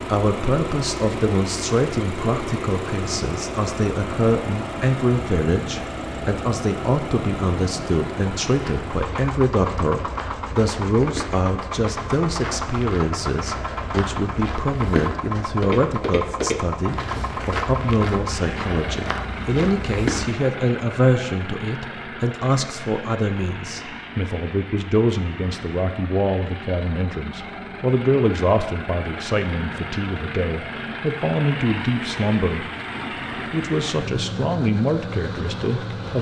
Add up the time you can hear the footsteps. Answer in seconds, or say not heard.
12 s.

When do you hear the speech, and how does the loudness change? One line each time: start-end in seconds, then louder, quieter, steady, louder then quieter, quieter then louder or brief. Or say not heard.
0.1-32.7 steady
33.4-36.1 brief.